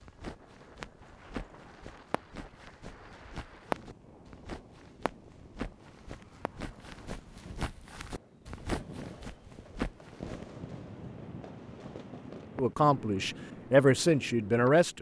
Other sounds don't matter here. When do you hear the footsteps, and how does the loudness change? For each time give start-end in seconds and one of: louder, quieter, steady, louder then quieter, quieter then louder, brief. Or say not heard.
0.0-10.5 louder.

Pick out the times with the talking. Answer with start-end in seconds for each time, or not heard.
12.6-14.9.